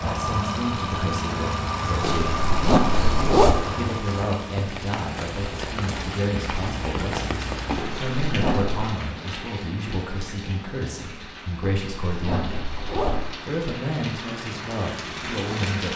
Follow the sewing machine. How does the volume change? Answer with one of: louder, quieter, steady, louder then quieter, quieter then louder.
steady.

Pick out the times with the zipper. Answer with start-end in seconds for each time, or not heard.
2.0-3.6, 7.8-8.9, 11.6-13.3.